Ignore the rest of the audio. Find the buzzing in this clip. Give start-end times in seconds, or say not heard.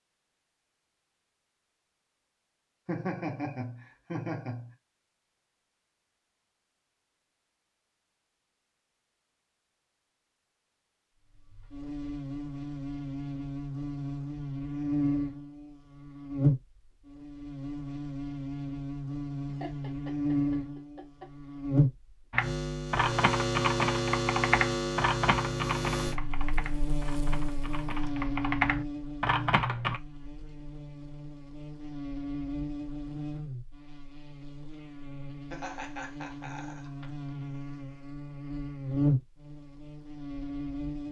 11.2-41.0.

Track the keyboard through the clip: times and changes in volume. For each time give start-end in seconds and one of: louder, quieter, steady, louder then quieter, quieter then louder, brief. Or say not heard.
22.3-30.0 quieter then louder.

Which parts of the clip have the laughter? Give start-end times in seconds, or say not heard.
2.9-4.7, 19.4-21.2, 35.5-37.0.